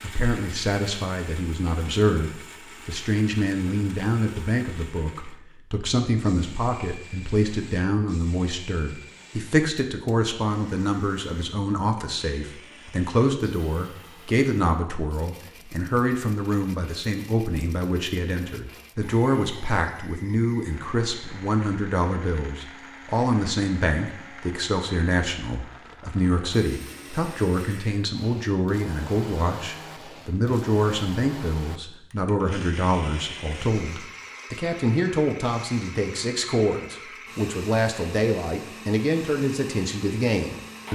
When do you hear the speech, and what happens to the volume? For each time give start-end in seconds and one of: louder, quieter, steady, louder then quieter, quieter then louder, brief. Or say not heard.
0.0-40.9 steady.